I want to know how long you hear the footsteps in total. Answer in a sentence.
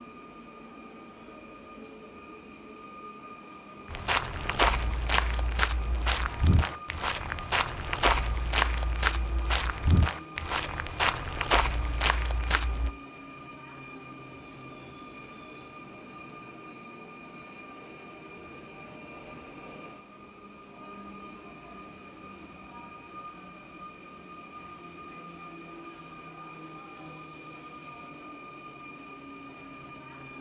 The footsteps can be heard for 9 seconds in total.